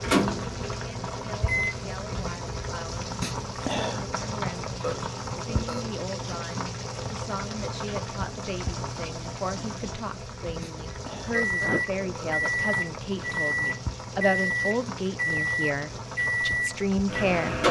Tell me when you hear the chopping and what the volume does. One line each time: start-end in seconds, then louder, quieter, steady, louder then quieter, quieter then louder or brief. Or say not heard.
not heard.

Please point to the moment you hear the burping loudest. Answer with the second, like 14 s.
5 s.